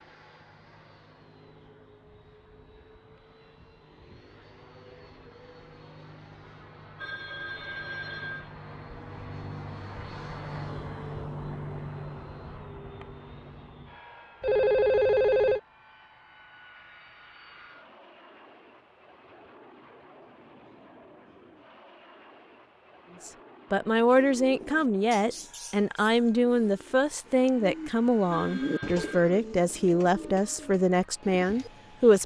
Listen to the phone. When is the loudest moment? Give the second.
15 s.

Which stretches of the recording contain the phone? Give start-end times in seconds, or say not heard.
7.0-8.6, 14.4-15.6, 28.3-29.2.